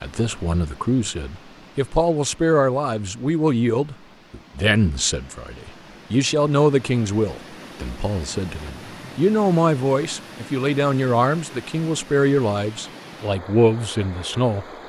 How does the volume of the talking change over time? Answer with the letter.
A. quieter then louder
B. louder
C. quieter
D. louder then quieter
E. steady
E.